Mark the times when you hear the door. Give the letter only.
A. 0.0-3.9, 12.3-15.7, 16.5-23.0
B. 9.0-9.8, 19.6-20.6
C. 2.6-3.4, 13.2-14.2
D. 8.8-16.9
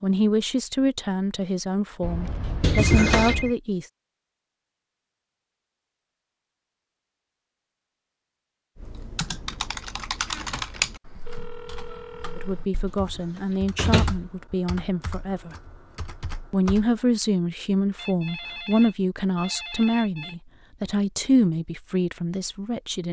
C.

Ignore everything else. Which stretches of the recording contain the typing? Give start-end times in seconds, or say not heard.
8.8-16.9.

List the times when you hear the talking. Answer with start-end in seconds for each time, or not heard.
0.0-3.9, 12.3-15.7, 16.5-23.0.